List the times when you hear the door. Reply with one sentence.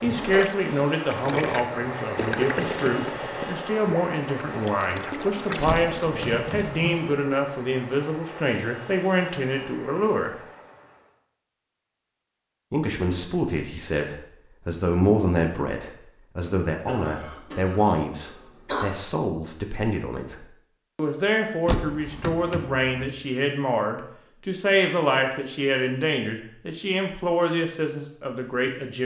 The door can be heard from 5.6 to 6.8 s and from 21.6 to 23.1 s.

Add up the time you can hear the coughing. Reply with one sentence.
You can hear the coughing for 2 seconds altogether.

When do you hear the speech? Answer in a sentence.
You can hear the speech from 0.0 to 10.3 s and from 12.7 to 28.9 s.